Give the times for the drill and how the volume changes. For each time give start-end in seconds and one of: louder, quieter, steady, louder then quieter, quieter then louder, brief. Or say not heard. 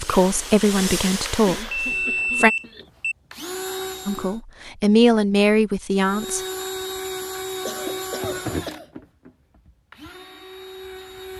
0.0-4.4 quieter then louder
6.0-11.3 quieter then louder.